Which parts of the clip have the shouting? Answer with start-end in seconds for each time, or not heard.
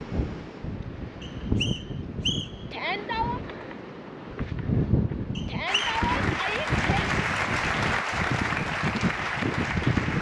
2.7-3.4, 5.5-7.2.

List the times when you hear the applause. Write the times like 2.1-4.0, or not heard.
5.7-10.1.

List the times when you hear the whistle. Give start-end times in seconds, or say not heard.
1.2-2.6, 5.3-6.0.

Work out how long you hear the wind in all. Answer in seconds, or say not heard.
10 s.